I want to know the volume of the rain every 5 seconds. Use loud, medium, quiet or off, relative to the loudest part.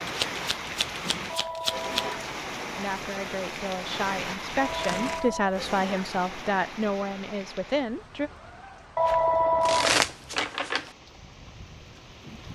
loud, medium, quiet.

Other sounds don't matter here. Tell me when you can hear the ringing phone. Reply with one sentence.
You can hear the ringing phone from 1.2 to 2.4 s, from 4.5 to 5.6 s and from 8.9 to 10.5 s.